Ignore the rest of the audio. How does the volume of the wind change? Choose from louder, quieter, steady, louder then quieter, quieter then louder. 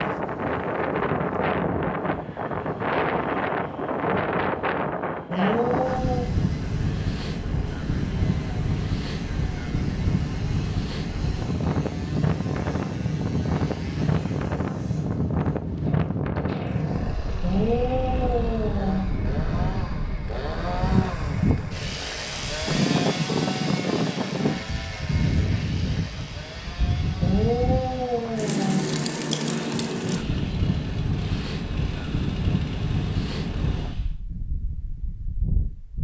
steady.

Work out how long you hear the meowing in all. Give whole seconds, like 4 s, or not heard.
4 s.